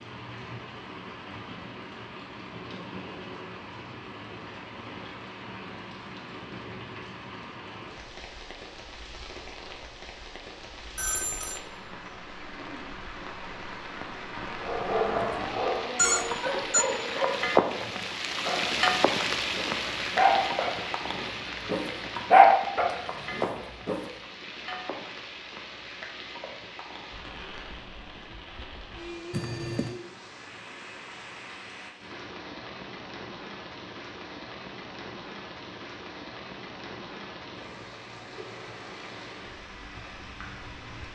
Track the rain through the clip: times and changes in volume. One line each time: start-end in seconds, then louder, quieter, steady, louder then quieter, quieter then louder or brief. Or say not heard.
0.0-41.1 louder then quieter.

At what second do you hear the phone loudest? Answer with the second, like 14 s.
16 s.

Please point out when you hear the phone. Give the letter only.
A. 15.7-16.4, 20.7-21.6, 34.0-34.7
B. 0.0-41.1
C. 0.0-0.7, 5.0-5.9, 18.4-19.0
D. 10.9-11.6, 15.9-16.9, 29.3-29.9
D.